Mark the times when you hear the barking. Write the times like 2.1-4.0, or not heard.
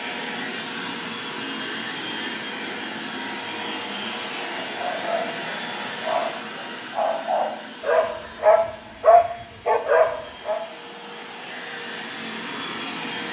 4.6-10.6.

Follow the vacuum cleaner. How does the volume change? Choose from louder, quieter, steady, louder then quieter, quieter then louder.
quieter then louder.